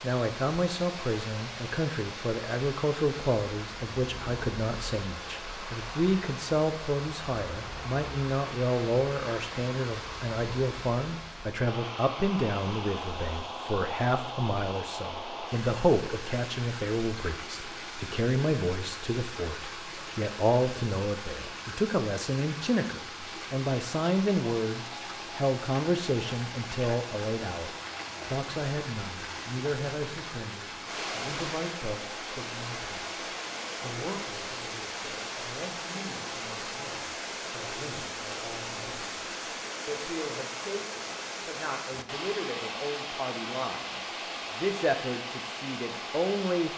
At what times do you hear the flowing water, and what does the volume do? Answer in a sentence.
The flowing water can be heard from 0.0 to 46.7 s, at a steady volume.